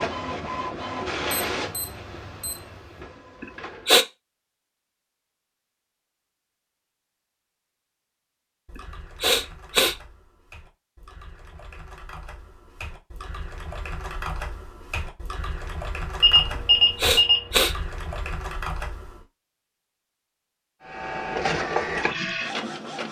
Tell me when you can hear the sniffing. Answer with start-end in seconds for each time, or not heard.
3.4-4.0, 8.8-9.9, 16.9-17.8.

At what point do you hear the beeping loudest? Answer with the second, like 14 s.
17 s.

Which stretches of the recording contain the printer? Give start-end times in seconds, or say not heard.
0.0-4.0, 20.8-23.0.